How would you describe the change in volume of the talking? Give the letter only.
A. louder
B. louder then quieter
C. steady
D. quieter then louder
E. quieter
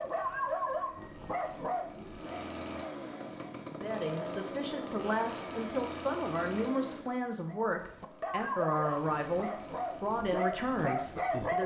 C.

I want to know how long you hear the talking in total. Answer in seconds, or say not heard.
8 s.